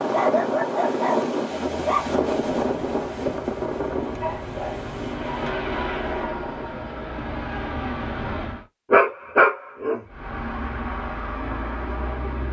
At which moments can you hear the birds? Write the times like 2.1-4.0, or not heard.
not heard.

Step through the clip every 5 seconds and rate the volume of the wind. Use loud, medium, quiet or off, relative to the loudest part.
loud, medium, off.